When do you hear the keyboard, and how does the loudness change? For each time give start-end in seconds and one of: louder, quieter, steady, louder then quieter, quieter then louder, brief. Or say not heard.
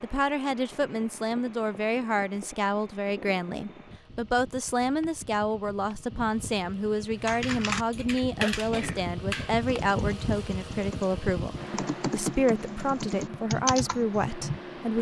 7.2-14.6 quieter then louder.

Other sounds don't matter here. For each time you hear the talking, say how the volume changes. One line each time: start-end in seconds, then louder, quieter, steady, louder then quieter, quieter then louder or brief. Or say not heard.
0.0-14.9 steady.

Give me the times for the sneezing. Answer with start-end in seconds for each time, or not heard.
8.4-9.1.